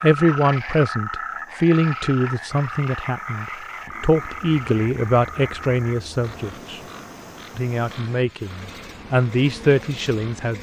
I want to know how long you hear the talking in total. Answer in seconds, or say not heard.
10 s.